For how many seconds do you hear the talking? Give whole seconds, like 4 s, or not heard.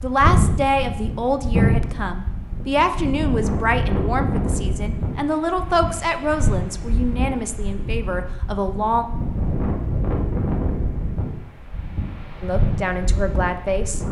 11 s.